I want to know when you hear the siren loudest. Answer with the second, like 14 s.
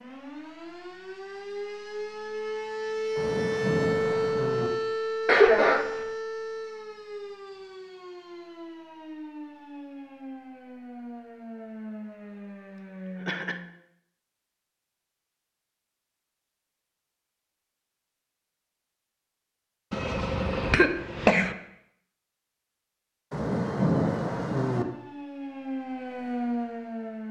4 s.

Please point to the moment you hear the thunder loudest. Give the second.
24 s.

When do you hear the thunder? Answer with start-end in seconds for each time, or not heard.
3.1-4.7, 23.3-24.9.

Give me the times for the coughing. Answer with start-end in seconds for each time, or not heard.
5.2-5.9, 13.2-13.6, 19.9-21.6.